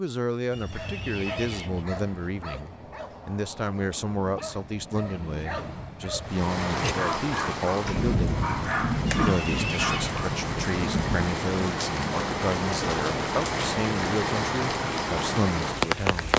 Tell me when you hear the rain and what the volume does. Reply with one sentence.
The rain can be heard from 6.2 to 16.3 s, at a steady volume.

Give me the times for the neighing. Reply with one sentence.
You can hear the neighing from 0.5 to 1.9 s and from 9.1 to 10.2 s.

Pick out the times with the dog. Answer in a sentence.
The dog can be heard from 0.5 to 10.3 s.